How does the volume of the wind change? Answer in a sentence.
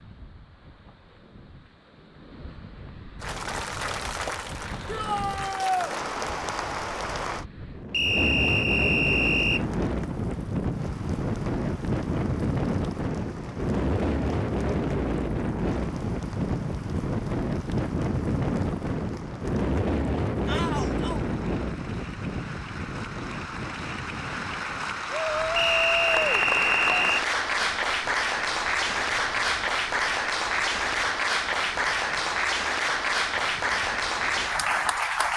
The volume of the wind goes up, then down.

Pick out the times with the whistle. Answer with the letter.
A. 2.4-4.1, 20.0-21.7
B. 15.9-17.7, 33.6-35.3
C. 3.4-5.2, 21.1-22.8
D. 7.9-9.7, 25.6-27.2
D.